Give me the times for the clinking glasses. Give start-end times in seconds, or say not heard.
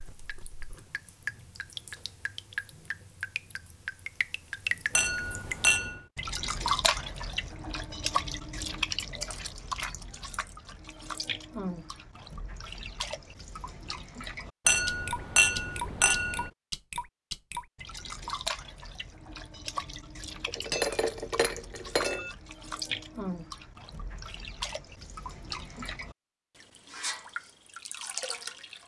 5.0-6.0, 14.7-16.5, 20.4-22.4.